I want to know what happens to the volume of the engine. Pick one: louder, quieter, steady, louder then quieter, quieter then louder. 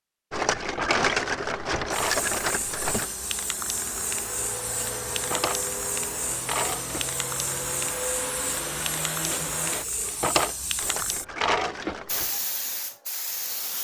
louder.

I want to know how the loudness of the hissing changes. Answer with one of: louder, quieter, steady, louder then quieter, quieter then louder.
steady.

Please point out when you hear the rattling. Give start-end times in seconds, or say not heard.
0.3-3.1, 10.8-12.3.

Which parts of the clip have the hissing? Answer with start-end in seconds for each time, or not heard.
2.0-13.8.